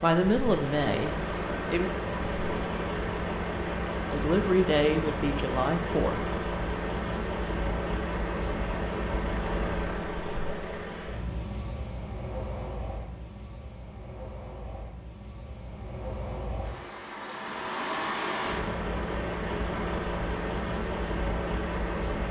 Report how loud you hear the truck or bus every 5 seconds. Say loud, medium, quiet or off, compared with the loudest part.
loud, loud, medium, loud, loud.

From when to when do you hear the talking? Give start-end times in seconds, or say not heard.
0.0-1.9, 4.0-6.2.